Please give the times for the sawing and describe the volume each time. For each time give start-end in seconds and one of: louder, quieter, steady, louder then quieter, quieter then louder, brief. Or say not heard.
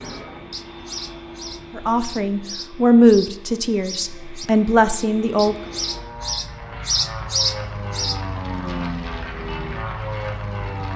not heard.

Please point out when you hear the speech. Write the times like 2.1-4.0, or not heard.
1.8-5.5.